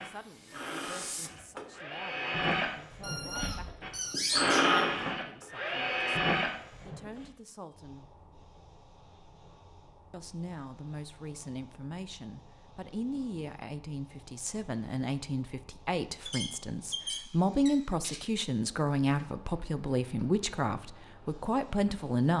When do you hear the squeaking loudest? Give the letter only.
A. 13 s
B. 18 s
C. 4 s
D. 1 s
C.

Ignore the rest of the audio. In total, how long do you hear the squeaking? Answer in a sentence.
The squeaking can be heard for 4 seconds in total.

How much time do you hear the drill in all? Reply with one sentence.
The drill can be heard for 7 seconds in total.